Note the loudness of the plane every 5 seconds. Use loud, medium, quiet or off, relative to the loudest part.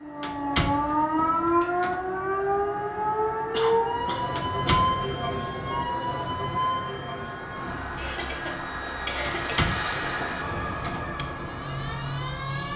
medium, loud, loud.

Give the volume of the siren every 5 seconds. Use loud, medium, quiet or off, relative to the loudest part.
loud, medium, medium.